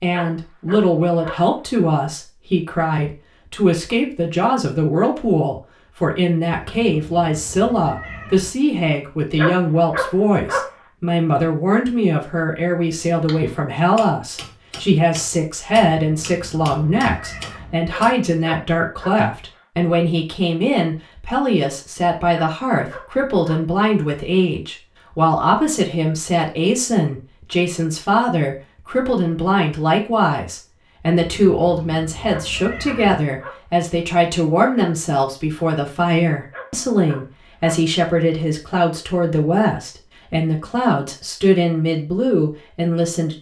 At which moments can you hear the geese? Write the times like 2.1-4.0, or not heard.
not heard.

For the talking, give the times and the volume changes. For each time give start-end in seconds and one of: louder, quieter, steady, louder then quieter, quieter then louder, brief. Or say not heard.
0.0-43.3 steady.